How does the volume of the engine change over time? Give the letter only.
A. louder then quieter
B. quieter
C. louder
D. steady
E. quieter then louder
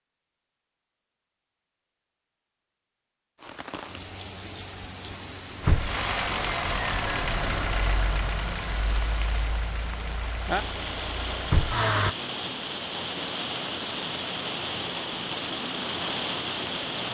E.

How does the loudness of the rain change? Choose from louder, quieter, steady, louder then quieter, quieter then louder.
louder.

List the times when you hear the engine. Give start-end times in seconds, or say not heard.
5.6-12.2.